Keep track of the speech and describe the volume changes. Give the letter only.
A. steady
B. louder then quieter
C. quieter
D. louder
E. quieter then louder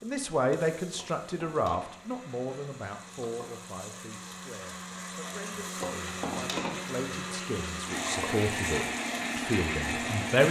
E.